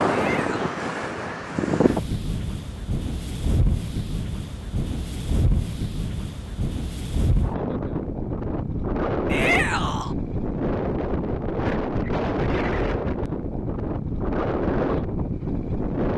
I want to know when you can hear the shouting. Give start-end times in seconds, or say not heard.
0.1-0.8, 9.3-10.2.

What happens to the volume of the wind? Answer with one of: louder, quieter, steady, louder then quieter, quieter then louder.
steady.